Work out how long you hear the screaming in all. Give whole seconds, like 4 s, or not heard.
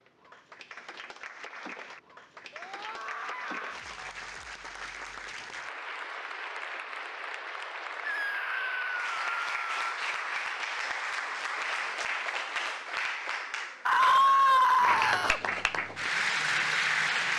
5 s.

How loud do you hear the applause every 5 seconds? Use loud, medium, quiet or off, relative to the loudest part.
quiet, medium, medium, loud.